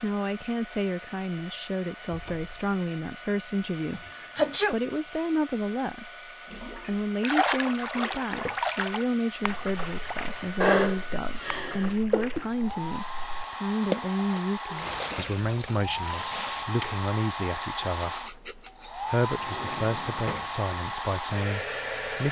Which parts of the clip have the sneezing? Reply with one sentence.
You can hear the sneezing from 3.9 to 4.8 s, from 10.6 to 12.4 s and from 18.0 to 19.0 s.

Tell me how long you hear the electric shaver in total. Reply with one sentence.
You can't hear the electric shaver here.